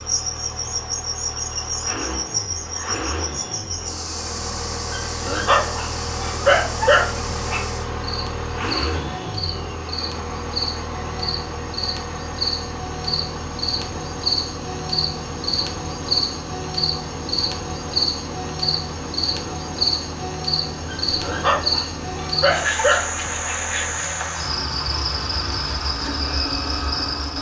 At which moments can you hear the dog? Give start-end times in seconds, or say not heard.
4.9-7.7, 20.9-23.5.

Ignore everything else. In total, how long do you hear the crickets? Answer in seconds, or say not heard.
27 s.